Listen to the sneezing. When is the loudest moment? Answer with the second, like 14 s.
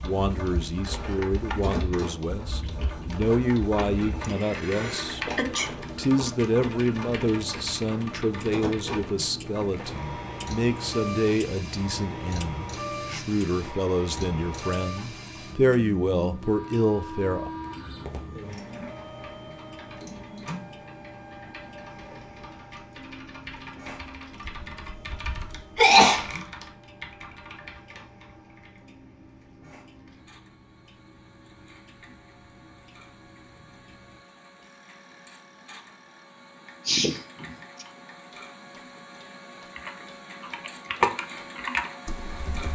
26 s.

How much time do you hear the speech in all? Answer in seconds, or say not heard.
17 s.